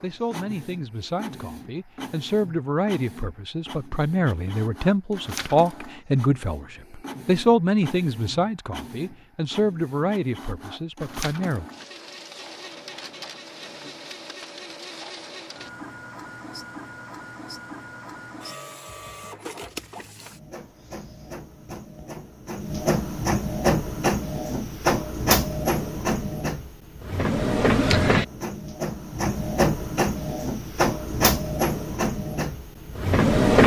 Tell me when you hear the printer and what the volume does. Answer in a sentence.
The printer can be heard from 0.0 to 33.6 s, getting louder.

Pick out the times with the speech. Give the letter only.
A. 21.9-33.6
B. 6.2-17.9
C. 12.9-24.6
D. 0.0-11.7
D.